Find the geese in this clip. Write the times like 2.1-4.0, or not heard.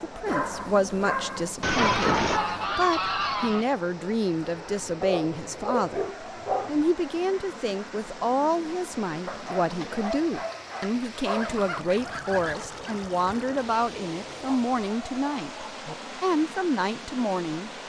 1.6-3.6, 11.3-13.5.